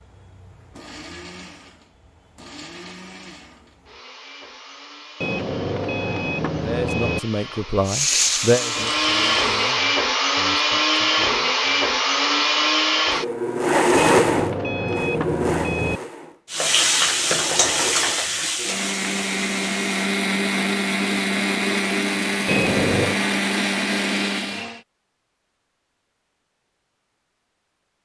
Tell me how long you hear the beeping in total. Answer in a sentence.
The beeping can be heard for 5 seconds in total.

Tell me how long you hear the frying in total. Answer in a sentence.
The frying can be heard for 5 seconds in total.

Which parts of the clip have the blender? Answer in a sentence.
The blender can be heard from 0.0 to 24.8 s.